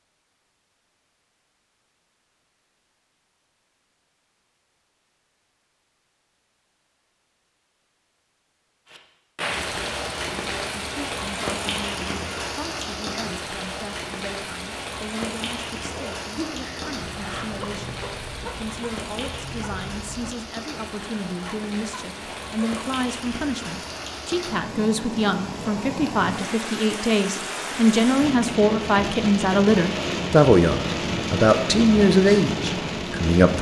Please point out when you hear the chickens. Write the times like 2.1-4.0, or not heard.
15.8-22.9.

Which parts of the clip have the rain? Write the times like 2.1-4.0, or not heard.
8.9-33.5.